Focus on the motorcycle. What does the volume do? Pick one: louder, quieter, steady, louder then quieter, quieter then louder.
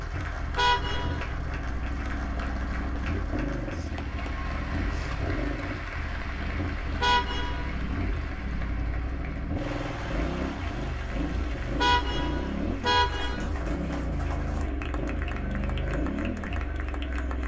steady.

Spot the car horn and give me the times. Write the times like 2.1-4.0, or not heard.
0.6-1.3, 7.0-7.8, 11.8-13.5.